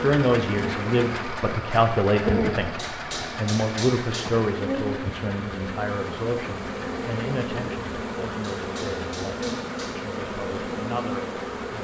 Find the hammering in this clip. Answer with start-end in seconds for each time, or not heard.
2.8-4.3, 8.4-9.9.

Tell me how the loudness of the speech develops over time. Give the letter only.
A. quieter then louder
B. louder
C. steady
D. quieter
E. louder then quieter
D.